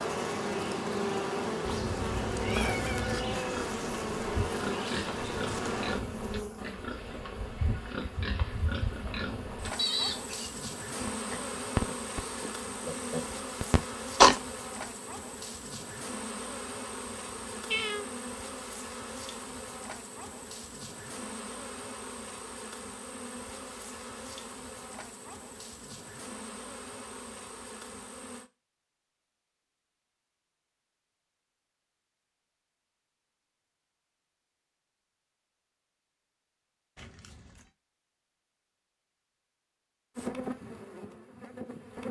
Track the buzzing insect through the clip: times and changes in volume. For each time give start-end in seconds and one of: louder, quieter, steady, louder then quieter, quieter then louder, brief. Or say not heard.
0.0-28.5 quieter
40.1-42.0 brief.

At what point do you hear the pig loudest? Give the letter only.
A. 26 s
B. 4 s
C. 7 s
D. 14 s
D.